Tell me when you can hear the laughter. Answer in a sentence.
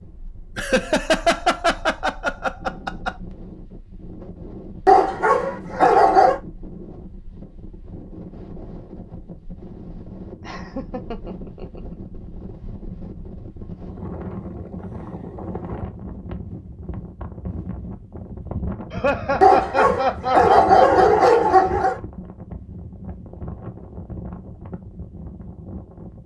You can hear the laughter from 0.6 to 3.1 s, from 10.4 to 11.9 s and from 18.9 to 21.2 s.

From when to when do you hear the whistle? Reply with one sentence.
You can't hear the whistle here.